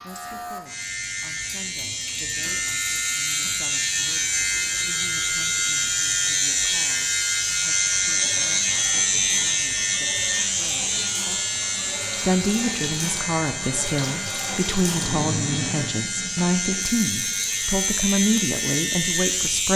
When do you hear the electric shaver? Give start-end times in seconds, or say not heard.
0.0-19.7.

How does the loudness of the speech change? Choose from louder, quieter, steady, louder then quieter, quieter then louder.
louder.